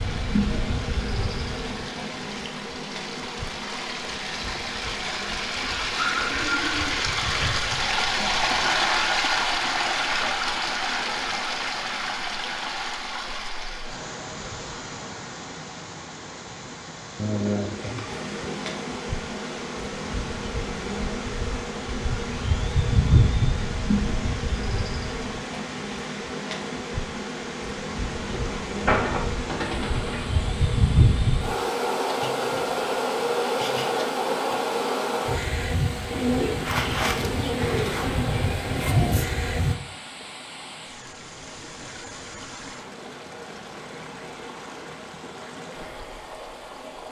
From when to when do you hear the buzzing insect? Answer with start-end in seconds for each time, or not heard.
0.0-8.6, 18.1-39.8.